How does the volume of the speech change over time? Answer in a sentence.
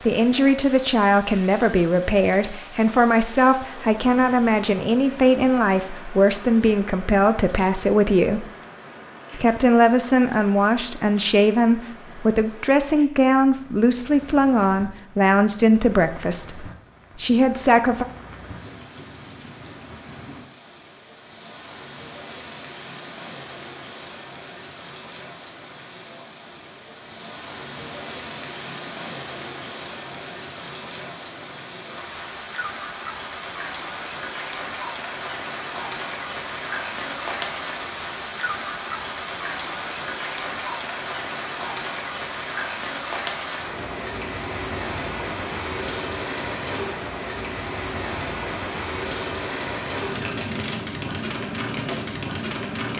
The volume of the speech stays about the same.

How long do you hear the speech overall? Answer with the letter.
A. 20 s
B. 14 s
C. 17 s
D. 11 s
C.